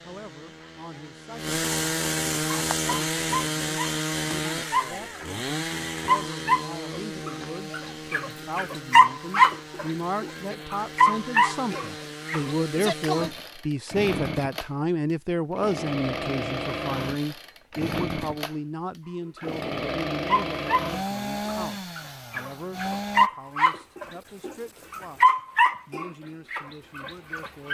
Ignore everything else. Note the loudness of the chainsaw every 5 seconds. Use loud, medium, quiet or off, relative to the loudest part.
loud, medium, medium, loud, loud, off.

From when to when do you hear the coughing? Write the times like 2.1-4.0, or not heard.
not heard.